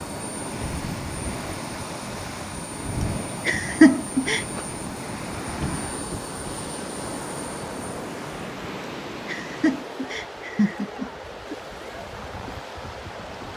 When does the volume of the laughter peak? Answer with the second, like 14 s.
4 s.